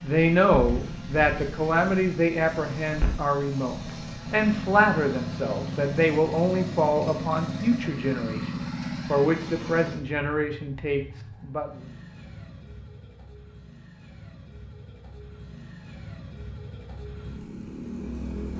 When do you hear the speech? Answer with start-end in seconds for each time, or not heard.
0.0-11.8.